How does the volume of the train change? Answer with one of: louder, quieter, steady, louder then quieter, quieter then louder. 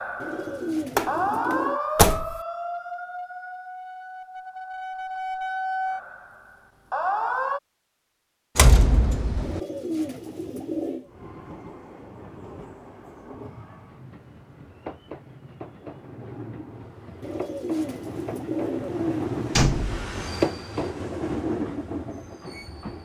louder.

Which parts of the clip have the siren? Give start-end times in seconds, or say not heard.
0.0-7.6.